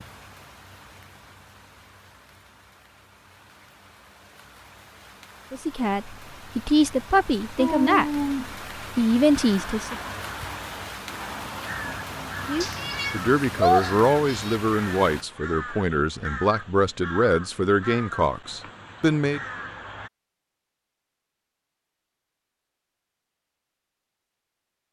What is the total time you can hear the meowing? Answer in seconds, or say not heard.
3 s.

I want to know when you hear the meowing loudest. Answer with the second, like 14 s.
14 s.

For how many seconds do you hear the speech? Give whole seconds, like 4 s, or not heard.
11 s.